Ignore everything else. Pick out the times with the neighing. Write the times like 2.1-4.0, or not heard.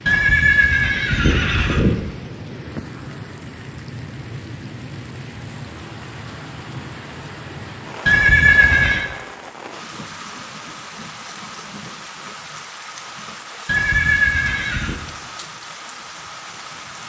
0.1-1.9, 8.1-9.1, 13.7-14.9.